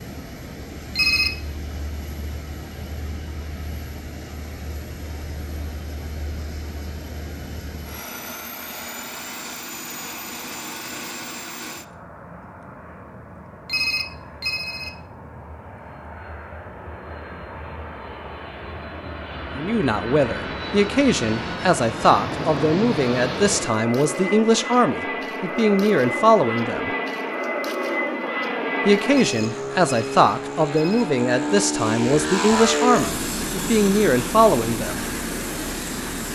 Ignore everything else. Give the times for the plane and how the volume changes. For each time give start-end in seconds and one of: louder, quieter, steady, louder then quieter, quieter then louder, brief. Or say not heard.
0.0-36.3 louder.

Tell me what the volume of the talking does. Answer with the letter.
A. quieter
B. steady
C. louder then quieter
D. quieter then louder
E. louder
B.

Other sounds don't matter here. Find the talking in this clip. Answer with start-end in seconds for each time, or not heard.
19.6-26.9, 28.9-35.0.